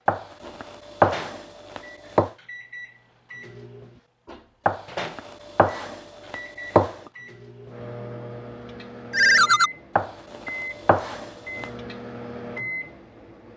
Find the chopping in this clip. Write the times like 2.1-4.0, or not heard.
0.1-2.3, 4.7-7.1, 9.9-11.7.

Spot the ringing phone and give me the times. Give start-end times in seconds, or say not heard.
9.1-9.7.